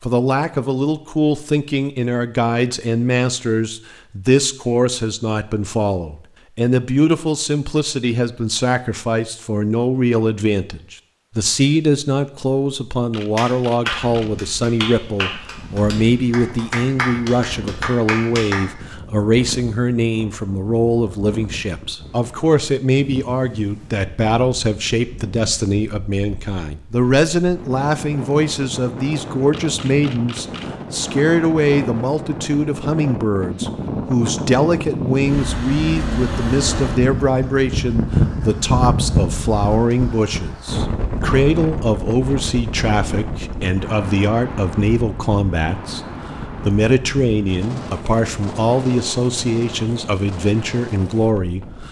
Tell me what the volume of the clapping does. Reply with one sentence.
The volume of the clapping goes down, then up.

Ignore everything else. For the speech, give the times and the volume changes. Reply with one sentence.
You can hear the speech from 0.0 to 46.0 s, at a steady volume; and from 46.6 to 51.8 s, at a steady volume.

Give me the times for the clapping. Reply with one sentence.
You can hear the clapping from 13.3 to 18.6 s.